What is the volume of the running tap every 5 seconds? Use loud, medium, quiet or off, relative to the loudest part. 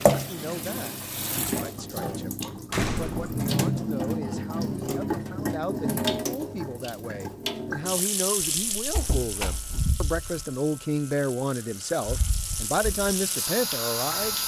loud, loud, medium.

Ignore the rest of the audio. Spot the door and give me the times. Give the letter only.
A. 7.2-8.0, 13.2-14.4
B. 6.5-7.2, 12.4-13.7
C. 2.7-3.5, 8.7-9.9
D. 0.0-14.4
C.